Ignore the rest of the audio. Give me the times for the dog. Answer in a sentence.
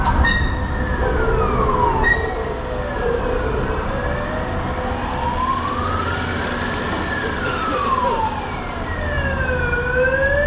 The dog can be heard from 0.9 to 3.8 s.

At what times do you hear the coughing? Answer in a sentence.
You can hear the coughing from 7.2 to 8.2 s.